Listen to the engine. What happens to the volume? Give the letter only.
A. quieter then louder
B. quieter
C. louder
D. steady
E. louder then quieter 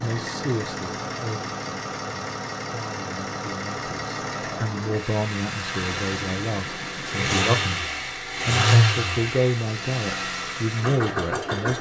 E.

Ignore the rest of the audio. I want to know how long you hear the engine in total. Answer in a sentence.
You can hear the engine for 12 seconds altogether.